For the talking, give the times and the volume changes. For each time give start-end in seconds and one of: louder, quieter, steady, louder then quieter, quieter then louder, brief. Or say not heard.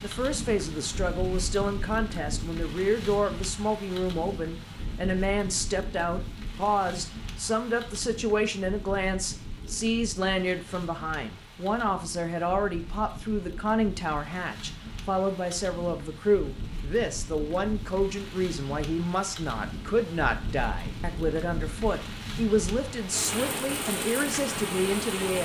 0.0-25.4 steady.